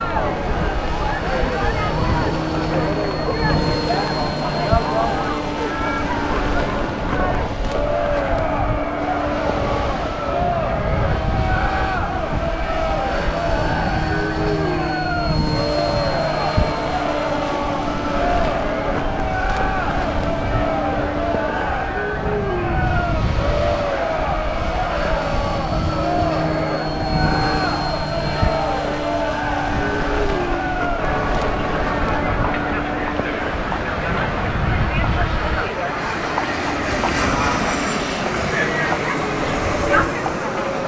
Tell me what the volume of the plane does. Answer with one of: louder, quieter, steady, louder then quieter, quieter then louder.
steady.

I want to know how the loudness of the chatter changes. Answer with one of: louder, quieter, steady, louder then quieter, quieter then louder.
steady.